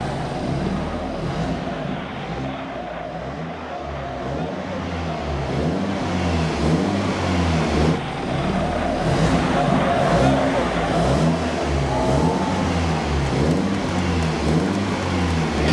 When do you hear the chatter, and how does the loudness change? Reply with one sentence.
You can hear the chatter from 0.0 to 15.6 s, getting louder then quieter.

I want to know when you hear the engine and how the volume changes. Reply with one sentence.
You can hear the engine from 0.0 to 15.6 s, getting louder.